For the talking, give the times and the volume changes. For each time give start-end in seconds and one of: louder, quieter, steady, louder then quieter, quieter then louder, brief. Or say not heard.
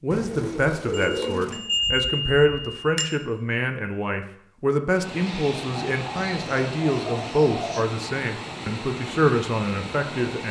0.0-10.4 steady.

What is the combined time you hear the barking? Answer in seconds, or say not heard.
not heard.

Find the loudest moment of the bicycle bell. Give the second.
2 s.